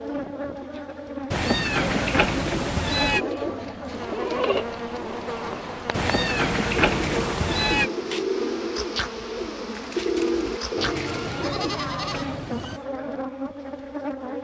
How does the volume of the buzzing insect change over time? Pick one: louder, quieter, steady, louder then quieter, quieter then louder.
steady.